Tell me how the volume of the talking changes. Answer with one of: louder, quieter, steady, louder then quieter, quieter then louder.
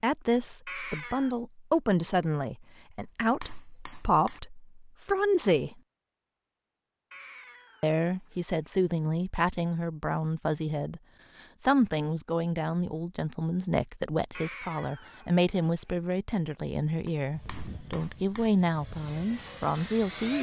steady.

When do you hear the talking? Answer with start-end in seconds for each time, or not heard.
0.0-5.8, 7.8-11.0, 11.6-20.3.